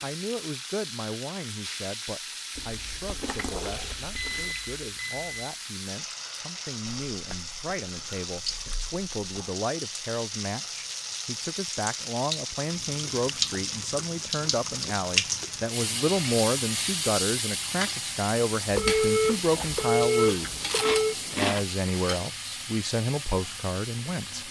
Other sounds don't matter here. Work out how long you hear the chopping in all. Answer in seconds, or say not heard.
not heard.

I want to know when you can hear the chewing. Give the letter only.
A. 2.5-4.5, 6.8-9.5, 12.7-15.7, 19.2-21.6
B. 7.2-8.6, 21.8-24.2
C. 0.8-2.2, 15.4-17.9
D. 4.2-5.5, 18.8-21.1
A.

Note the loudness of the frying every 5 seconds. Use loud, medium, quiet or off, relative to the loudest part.
medium, medium, loud, loud, medium.